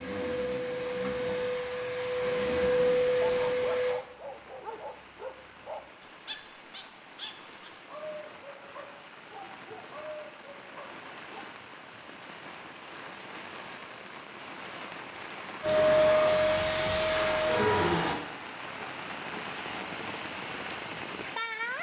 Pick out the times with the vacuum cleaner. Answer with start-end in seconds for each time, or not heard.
0.0-4.0, 15.6-18.1.